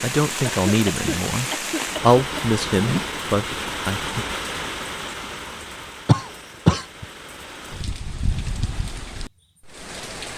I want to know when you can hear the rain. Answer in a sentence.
The rain can be heard from 0.0 to 10.3 s.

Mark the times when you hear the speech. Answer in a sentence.
You can hear the speech from 0.0 to 4.2 s.